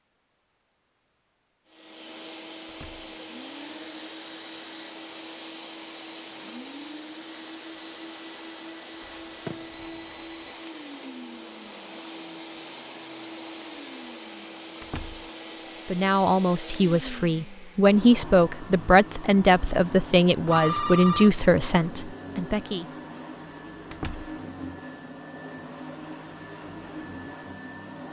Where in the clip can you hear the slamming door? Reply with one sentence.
The slamming door can be heard from 2.6 to 3.1 s, from 14.8 to 15.3 s and from 23.9 to 24.3 s.